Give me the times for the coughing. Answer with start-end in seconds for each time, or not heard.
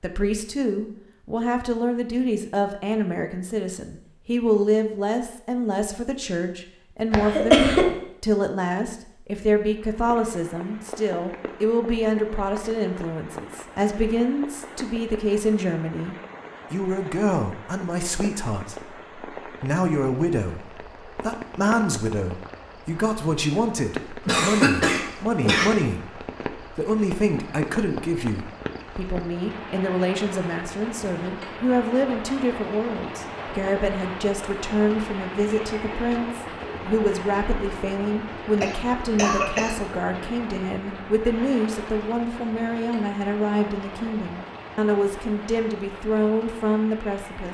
7.1-7.8, 24.2-25.8, 38.6-39.8.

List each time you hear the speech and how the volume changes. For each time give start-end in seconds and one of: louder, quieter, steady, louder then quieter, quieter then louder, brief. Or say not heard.
0.0-47.5 steady.